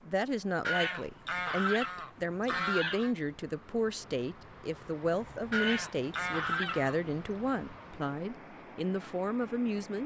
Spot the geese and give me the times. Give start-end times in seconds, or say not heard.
0.7-3.1, 5.5-7.1.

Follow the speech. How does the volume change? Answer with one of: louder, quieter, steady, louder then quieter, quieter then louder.
steady.